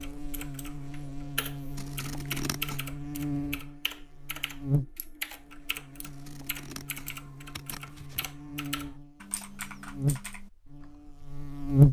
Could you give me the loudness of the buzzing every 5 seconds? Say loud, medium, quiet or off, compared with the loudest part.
quiet, quiet, loud.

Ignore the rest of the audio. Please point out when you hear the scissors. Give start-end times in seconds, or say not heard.
1.8-2.9, 6.0-8.3.